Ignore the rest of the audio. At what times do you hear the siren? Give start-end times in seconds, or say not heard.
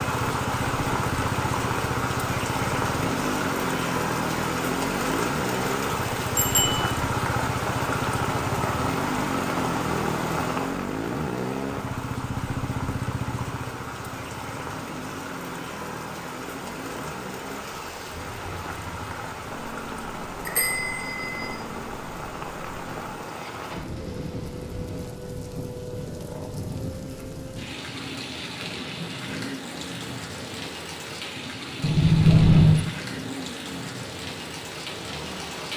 not heard.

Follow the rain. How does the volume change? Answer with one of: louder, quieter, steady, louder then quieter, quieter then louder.
quieter.